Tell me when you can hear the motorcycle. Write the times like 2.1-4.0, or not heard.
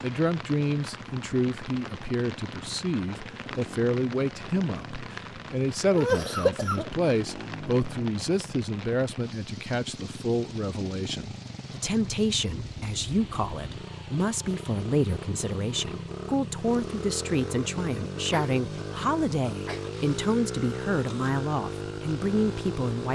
0.0-23.1.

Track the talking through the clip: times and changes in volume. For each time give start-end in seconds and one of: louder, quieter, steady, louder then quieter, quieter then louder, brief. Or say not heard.
0.0-23.1 steady.